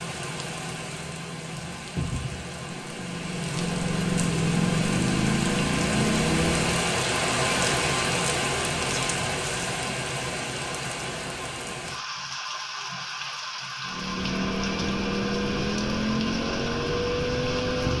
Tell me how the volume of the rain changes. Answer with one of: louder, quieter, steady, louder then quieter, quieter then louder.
louder then quieter.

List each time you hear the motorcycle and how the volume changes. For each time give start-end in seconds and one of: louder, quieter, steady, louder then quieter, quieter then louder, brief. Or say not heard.
0.0-7.0 louder
13.8-17.9 steady.